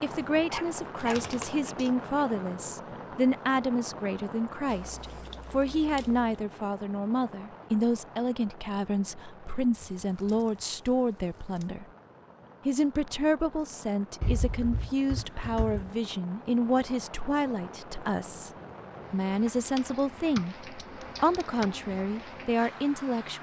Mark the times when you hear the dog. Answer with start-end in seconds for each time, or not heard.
0.5-1.9.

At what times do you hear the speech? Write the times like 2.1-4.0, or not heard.
0.0-11.8, 12.7-18.5, 19.1-23.3.